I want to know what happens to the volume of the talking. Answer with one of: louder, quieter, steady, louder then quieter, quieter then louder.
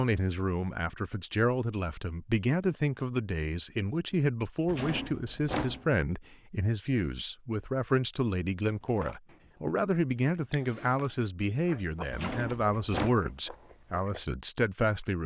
steady.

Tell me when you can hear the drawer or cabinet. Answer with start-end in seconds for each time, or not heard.
4.7-5.8, 12.1-13.2.